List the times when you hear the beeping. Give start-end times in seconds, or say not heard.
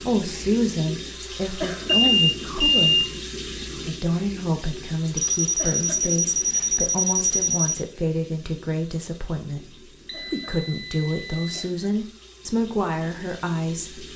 1.9-3.0, 5.2-7.8, 10.1-11.7.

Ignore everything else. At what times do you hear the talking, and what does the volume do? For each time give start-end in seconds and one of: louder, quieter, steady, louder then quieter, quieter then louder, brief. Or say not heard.
0.0-14.1 steady.